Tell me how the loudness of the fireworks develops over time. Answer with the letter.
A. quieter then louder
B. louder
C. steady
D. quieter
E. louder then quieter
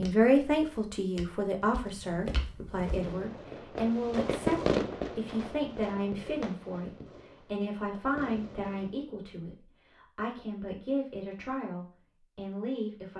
E.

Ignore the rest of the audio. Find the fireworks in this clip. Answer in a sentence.
You can hear the fireworks from 2.8 to 8.9 s.